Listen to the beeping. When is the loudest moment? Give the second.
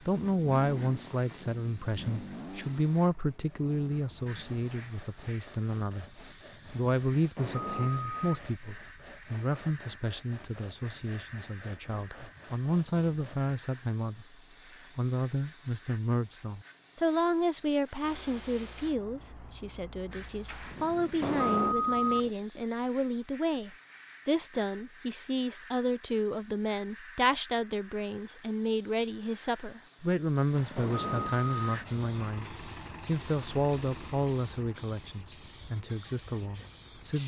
22 s.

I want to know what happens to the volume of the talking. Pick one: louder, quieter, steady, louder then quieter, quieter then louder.
steady.